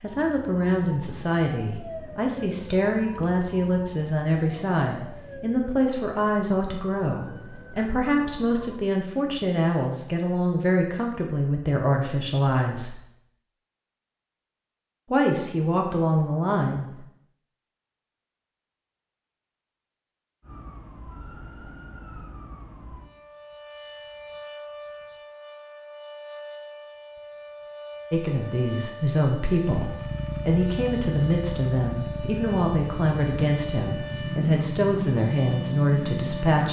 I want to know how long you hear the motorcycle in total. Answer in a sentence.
You can hear the motorcycle for 7 seconds altogether.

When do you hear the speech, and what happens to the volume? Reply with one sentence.
You can hear the speech from 0.0 to 12.9 s, at a steady volume; briefly from 15.1 to 16.9 s; and from 28.1 to 36.6 s, at a steady volume.